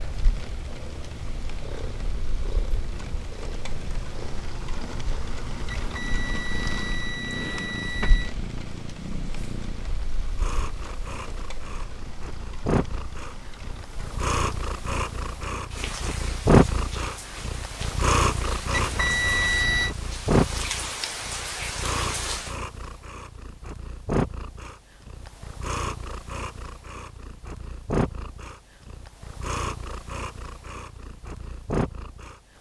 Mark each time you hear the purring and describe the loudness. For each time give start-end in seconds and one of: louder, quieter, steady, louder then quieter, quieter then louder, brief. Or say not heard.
0.0-32.5 louder then quieter.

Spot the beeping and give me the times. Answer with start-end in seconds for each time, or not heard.
5.8-8.3, 18.7-19.9.